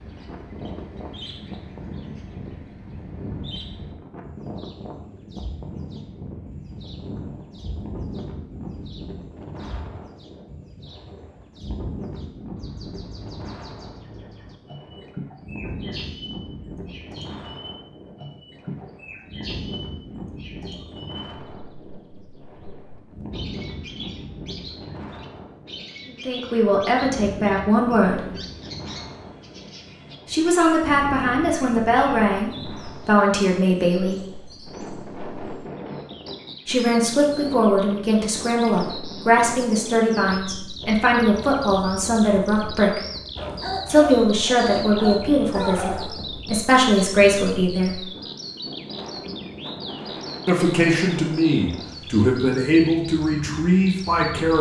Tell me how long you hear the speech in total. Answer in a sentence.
The speech can be heard for 21 seconds in total.